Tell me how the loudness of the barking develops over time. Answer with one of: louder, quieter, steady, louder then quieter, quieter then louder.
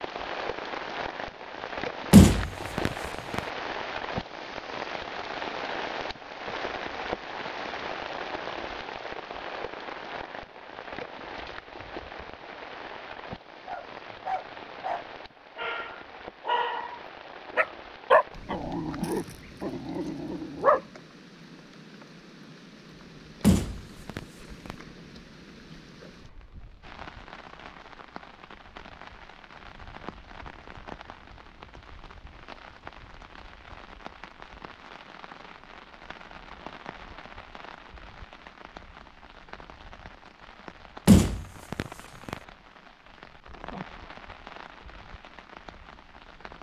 louder then quieter.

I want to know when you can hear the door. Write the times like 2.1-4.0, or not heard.
2.1-3.4, 23.4-24.8, 41.0-42.4.